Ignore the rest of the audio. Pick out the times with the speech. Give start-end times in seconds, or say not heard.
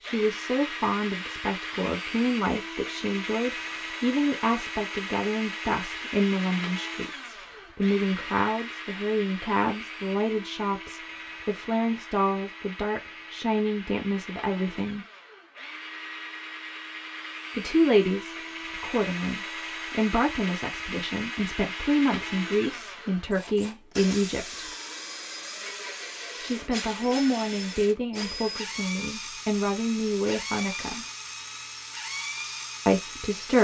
0.0-15.1, 17.6-24.7, 26.4-31.1, 32.9-33.5.